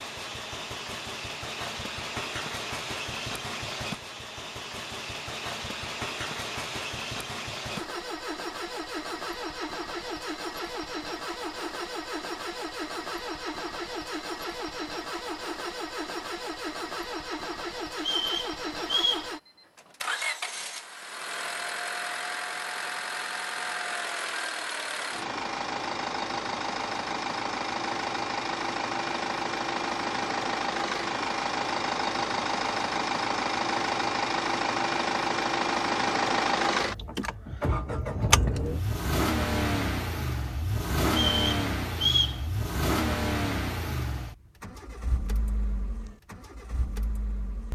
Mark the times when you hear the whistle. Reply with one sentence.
The whistle can be heard from 17.9 to 19.3 s and from 41.1 to 42.4 s.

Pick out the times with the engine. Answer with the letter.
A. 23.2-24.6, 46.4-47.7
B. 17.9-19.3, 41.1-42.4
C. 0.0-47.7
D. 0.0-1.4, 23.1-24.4
C.